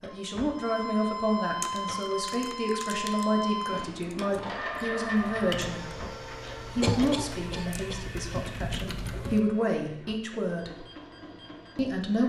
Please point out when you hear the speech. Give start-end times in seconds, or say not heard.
0.0-6.0, 6.8-10.8, 11.8-12.2.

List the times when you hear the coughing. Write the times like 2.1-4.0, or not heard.
6.8-8.3.